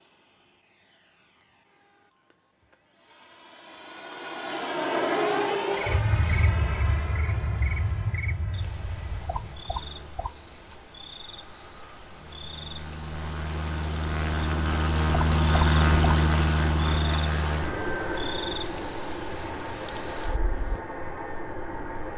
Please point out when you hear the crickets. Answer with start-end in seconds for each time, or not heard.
5.8-22.1.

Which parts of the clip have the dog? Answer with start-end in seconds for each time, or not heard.
not heard.